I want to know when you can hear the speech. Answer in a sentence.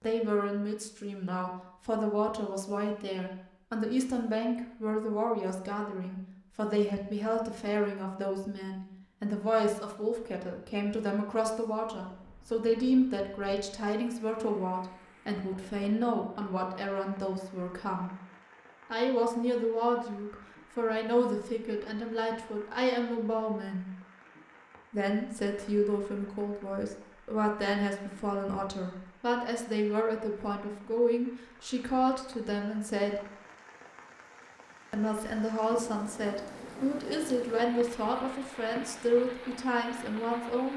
You can hear the speech from 0.0 to 18.1 s, from 18.9 to 23.9 s, from 24.9 to 33.2 s and from 34.9 to 40.7 s.